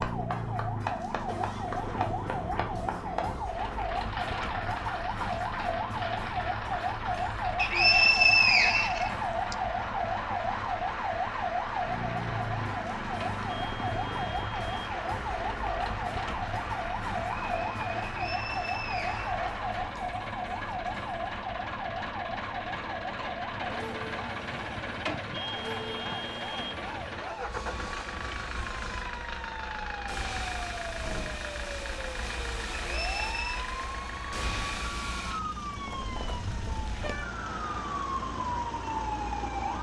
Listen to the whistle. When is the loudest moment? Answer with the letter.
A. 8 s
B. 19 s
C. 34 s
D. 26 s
A.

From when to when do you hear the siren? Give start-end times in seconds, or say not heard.
0.0-39.7.